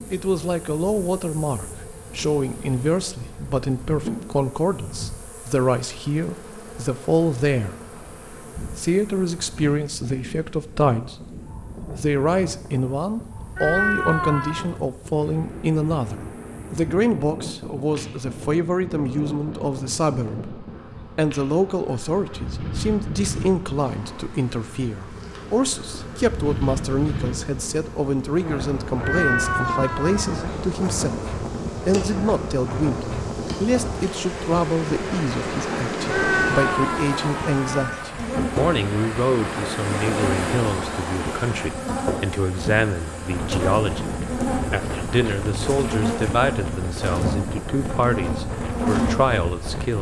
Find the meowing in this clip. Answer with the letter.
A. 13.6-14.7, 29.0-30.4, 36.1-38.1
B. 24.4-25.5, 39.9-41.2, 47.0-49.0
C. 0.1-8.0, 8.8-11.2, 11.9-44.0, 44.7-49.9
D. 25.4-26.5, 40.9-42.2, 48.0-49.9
A.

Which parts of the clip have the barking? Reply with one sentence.
The barking can't be heard in this clip.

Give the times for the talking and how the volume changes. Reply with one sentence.
The talking can be heard from 0.1 to 8.0 s, at a steady volume; briefly from 8.8 to 11.2 s; from 11.9 to 44.0 s, at a steady volume; and from 44.7 to 49.9 s, getting quieter then louder.